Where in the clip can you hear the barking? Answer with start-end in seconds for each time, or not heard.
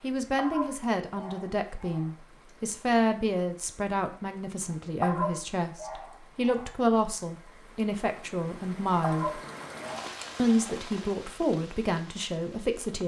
0.3-2.1, 5.0-6.8, 9.0-10.8.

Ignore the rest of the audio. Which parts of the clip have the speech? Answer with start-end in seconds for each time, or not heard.
0.0-9.4, 10.3-13.0.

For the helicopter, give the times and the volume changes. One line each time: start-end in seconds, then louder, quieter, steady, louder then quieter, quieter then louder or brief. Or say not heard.
not heard.